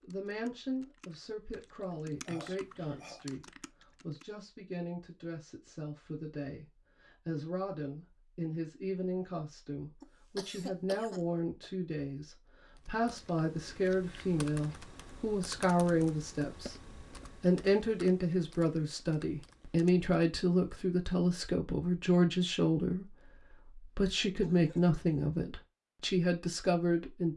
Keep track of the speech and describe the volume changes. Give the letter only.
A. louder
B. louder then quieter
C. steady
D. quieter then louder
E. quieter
A.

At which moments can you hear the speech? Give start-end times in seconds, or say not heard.
0.0-16.8, 17.4-27.3.